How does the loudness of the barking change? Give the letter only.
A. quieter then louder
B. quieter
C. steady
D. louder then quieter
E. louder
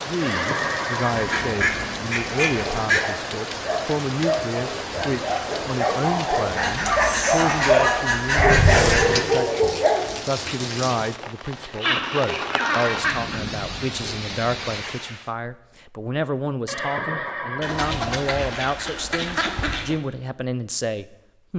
E.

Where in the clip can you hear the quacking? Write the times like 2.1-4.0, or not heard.
1.1-3.0, 6.5-9.2, 11.8-13.5, 17.6-19.9.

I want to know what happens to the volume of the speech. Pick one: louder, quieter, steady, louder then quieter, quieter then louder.
steady.